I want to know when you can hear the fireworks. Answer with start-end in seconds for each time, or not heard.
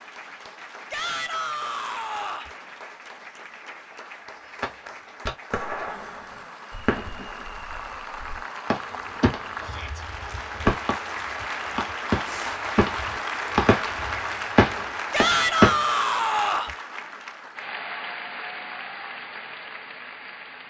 4.6-15.8.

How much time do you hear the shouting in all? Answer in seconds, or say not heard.
4 s.